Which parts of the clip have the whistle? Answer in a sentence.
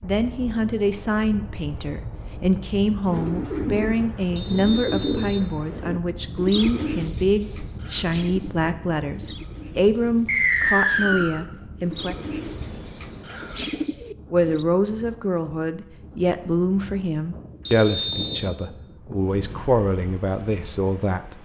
You can hear the whistle from 4.3 to 5.4 s, from 10.2 to 11.3 s and from 17.6 to 18.5 s.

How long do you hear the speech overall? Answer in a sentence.
The speech can be heard for 19 seconds in total.